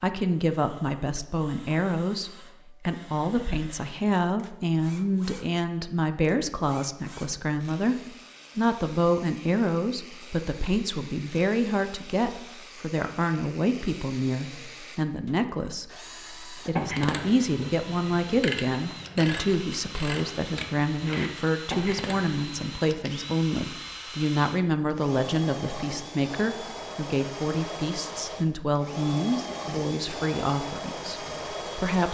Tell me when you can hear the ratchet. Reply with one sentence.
You can hear the ratchet from 16.8 to 23.0 s.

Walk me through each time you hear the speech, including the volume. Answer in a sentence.
The speech can be heard from 0.0 to 32.0 s, at a steady volume.